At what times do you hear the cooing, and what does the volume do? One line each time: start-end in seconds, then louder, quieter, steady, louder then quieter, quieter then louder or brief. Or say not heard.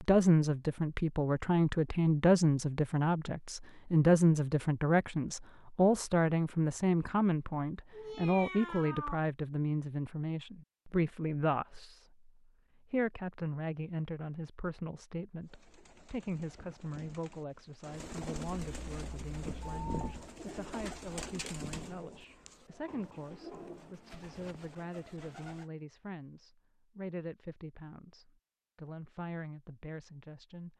15.4-25.6 louder then quieter.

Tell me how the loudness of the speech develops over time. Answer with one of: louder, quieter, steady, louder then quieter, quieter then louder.
quieter.